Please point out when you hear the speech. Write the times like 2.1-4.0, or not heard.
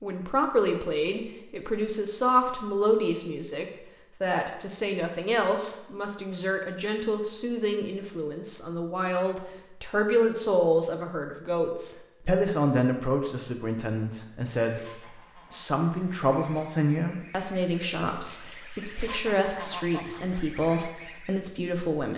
0.0-22.1.